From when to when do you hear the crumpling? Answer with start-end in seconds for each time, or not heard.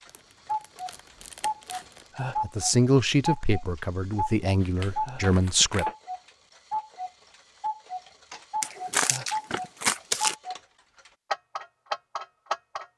0.1-2.0, 4.8-6.0, 8.6-10.3.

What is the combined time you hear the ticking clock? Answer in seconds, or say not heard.
13 s.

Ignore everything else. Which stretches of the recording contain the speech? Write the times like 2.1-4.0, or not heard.
2.4-5.8.